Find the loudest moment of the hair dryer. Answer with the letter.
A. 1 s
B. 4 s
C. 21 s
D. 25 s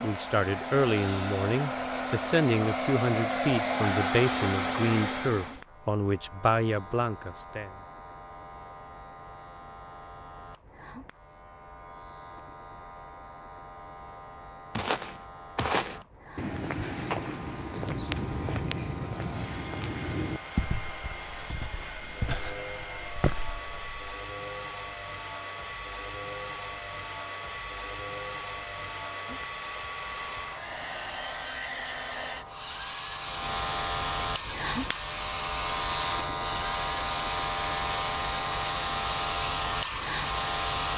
B.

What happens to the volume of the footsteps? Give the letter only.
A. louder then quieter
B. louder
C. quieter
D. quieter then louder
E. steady
C.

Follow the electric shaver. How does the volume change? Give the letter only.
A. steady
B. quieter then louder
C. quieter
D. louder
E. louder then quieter
D.